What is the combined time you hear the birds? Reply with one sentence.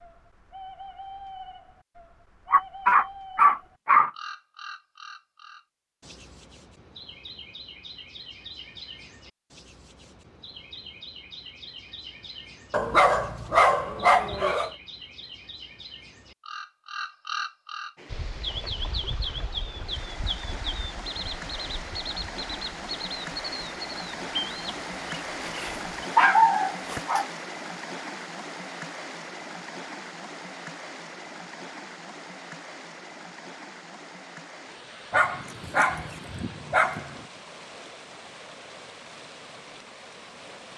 The birds can be heard for 26 seconds in total.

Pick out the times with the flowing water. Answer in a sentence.
The flowing water can be heard from 17.9 to 40.7 s.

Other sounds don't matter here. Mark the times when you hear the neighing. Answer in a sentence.
The neighing can't be heard in this clip.